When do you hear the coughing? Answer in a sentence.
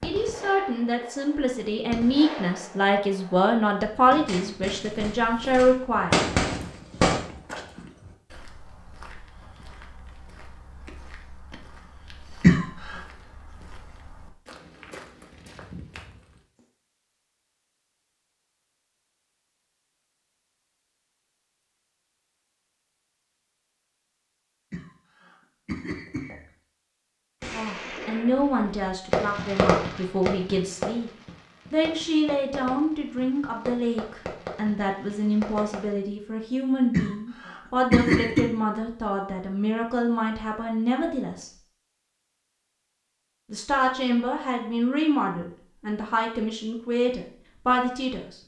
You can hear the coughing from 12.4 to 13.0 s, from 24.7 to 26.4 s and from 36.9 to 38.5 s.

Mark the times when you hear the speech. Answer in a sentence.
You can hear the speech from 0.0 to 6.2 s, from 27.5 to 31.1 s, from 31.7 to 41.5 s and from 43.5 to 48.4 s.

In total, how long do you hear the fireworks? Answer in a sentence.
The fireworks can be heard for 16 seconds in total.